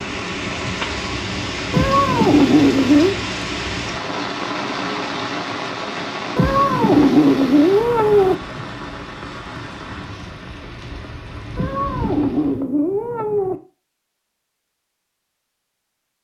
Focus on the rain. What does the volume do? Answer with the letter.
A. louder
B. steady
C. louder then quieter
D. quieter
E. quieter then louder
D.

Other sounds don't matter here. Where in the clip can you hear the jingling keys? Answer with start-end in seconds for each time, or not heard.
not heard.